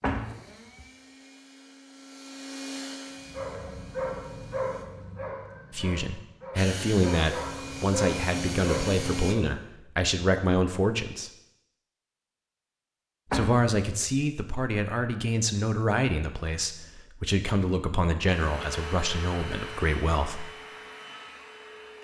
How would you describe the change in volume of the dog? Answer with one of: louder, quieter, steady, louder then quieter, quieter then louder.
quieter then louder.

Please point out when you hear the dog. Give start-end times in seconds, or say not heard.
3.2-9.6.